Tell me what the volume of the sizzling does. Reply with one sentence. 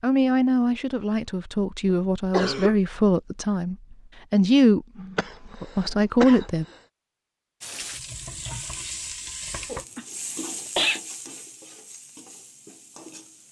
The loudness of the sizzling goes down.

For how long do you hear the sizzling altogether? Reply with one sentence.
The sizzling can be heard for 6 seconds in total.